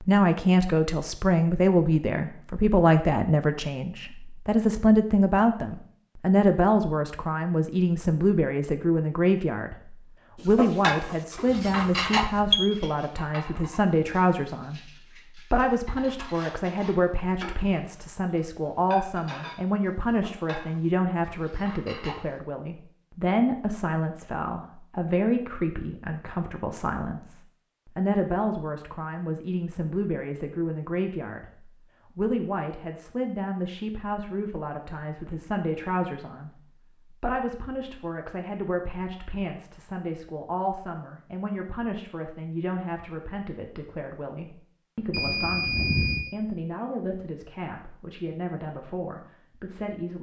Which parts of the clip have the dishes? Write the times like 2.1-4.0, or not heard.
10.4-22.4.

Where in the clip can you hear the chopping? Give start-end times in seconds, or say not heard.
not heard.